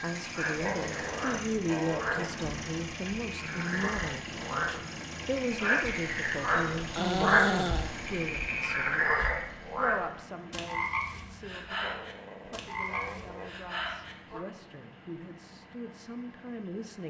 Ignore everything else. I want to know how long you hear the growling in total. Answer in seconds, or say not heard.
5 s.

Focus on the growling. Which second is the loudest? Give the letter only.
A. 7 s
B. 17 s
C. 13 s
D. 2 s
A.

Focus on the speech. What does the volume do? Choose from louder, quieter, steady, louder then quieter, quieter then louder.
quieter.